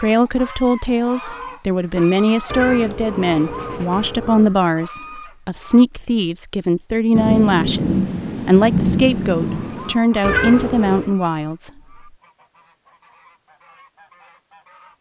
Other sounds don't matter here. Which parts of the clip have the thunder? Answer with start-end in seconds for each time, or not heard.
7.2-9.9.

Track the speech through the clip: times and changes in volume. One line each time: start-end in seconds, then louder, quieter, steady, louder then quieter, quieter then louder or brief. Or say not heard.
0.0-11.7 steady.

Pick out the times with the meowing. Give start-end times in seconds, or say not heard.
2.5-4.5, 10.2-11.1.